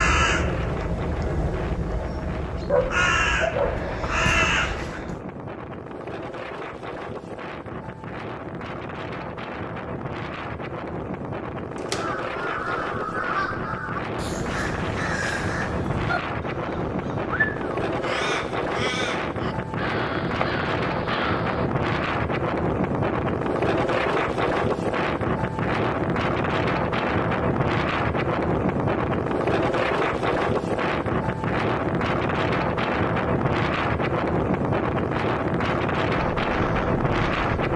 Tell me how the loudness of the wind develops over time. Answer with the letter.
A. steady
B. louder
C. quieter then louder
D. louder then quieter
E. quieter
B.